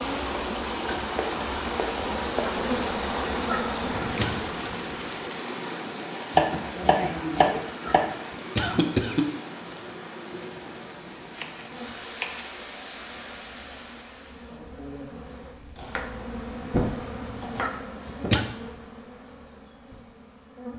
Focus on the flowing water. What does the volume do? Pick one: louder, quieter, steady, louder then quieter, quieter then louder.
quieter.